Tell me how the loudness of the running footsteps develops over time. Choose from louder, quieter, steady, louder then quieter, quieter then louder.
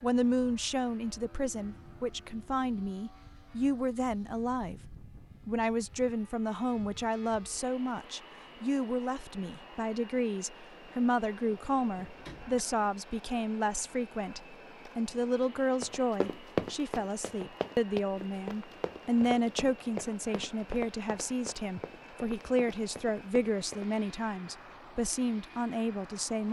quieter.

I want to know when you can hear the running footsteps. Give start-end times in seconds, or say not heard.
15.8-23.9.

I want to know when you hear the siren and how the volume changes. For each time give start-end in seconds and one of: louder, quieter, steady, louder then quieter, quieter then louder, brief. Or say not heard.
not heard.